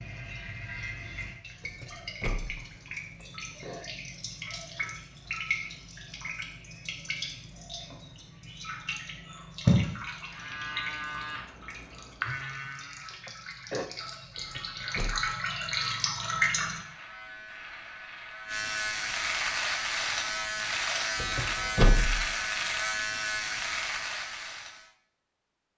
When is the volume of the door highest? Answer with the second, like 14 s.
22 s.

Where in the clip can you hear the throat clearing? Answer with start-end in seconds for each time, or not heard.
3.2-3.9, 13.2-13.9.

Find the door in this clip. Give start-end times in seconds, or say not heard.
1.6-2.6, 14.3-15.2, 21.2-22.3.